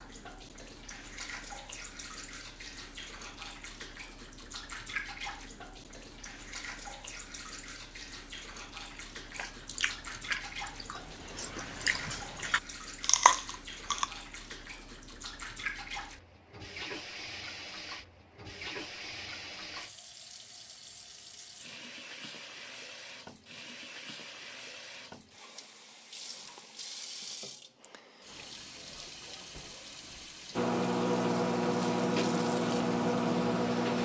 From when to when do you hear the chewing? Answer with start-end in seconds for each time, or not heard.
8.9-14.1.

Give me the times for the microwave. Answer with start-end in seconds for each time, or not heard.
30.6-34.0.